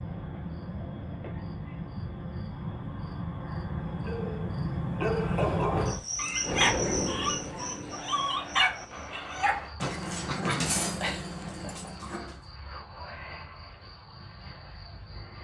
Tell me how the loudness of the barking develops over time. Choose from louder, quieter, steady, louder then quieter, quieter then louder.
steady.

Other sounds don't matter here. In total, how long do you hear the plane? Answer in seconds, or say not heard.
3 s.